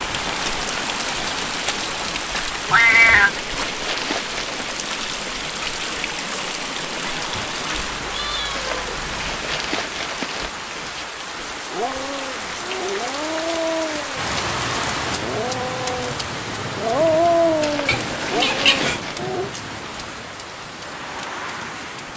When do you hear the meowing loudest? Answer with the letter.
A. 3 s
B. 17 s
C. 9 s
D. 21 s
A.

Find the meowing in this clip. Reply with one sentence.
You can hear the meowing from 2.6 to 3.3 s, from 7.8 to 9.2 s and from 17.9 to 19.0 s.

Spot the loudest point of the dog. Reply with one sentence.
The loudest moment of the dog is at 17 seconds.